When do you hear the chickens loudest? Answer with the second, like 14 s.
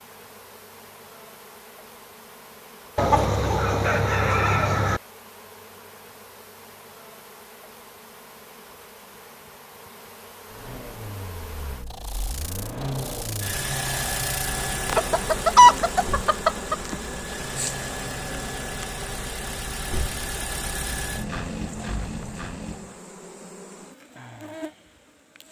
16 s.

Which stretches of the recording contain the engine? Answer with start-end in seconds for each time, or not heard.
10.4-23.0.